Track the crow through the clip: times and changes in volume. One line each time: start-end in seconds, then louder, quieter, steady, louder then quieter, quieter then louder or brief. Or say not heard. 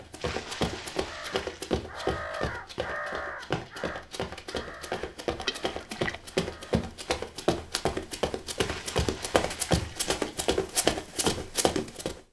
1.0-6.9 quieter.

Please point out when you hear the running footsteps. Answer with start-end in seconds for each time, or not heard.
0.0-12.2.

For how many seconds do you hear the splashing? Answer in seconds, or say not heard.
4 s.